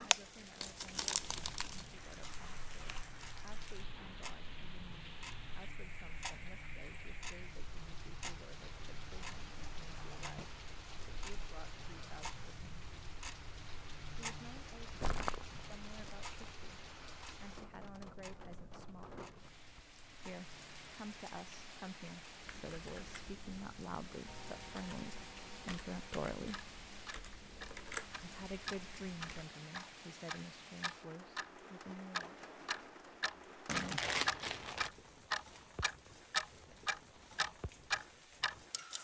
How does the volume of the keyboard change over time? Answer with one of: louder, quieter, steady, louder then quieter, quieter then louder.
louder.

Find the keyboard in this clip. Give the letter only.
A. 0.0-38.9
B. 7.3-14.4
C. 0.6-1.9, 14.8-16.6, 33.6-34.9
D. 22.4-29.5
D.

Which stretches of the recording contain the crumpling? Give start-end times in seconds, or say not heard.
0.6-1.9, 14.8-16.6, 33.6-34.9.